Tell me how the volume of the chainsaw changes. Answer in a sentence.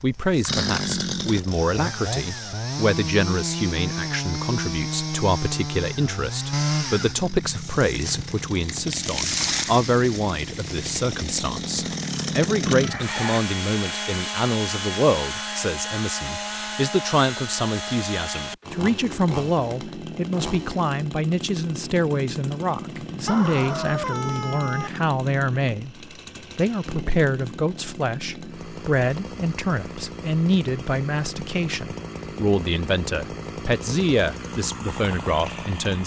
The volume of the chainsaw goes down.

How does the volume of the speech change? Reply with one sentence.
The volume of the speech stays about the same.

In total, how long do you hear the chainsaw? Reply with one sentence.
You can hear the chainsaw for 36 seconds altogether.